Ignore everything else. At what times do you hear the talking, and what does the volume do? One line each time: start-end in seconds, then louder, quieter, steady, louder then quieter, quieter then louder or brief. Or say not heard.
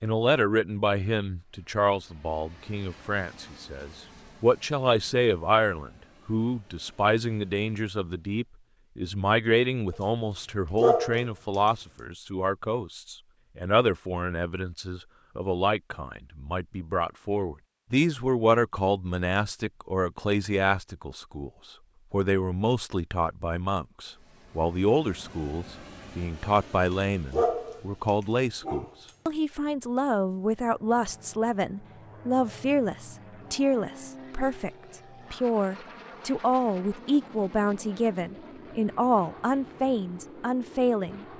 0.0-41.2 steady.